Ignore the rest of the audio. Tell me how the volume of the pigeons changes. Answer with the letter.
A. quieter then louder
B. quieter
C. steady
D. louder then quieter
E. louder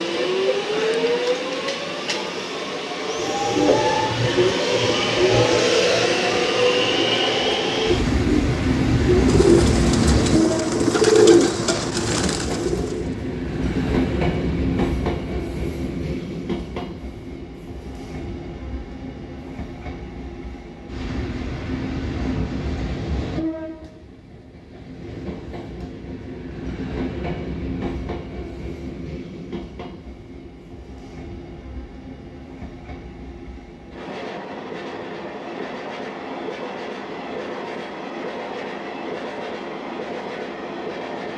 A.